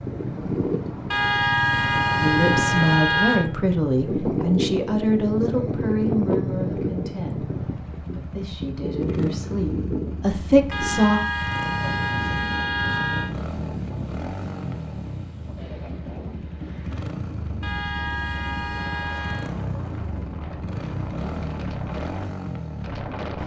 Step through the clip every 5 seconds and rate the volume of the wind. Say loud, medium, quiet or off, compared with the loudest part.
loud, loud, medium, quiet, medium.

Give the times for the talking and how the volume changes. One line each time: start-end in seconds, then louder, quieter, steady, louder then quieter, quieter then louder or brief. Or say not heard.
2.2-11.2 quieter then louder.